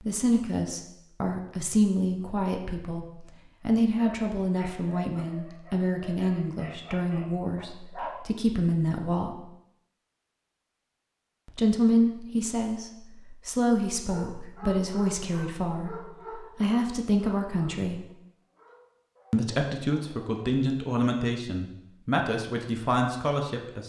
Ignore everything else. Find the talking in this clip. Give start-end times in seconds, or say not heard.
0.0-9.3, 11.4-18.1, 19.3-23.8.